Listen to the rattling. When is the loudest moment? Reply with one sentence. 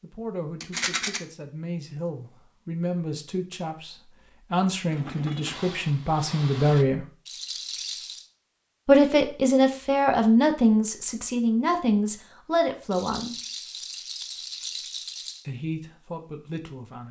The loudest moment of the rattling is at 1 second.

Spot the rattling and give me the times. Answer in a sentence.
The rattling can be heard from 0.6 to 1.2 s, from 7.2 to 8.2 s and from 12.9 to 15.4 s.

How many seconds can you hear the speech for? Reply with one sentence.
The speech can be heard for 13 seconds in total.